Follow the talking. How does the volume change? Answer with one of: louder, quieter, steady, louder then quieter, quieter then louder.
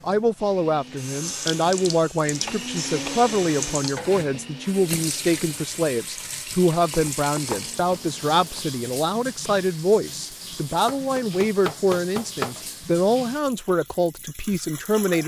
steady.